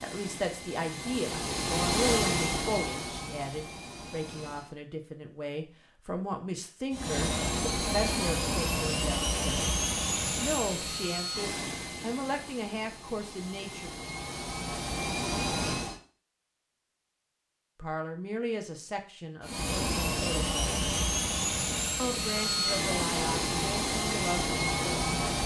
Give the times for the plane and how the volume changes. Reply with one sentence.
The plane can be heard from 0.0 to 4.8 s, getting louder then quieter; from 6.9 to 16.0 s, getting quieter then louder; and from 19.4 to 25.4 s, at a steady volume.